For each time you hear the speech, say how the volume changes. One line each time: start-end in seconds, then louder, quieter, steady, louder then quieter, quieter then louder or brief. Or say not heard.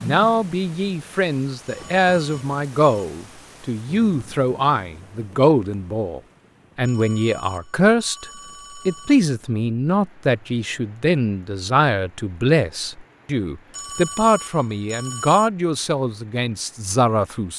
0.0-17.5 steady.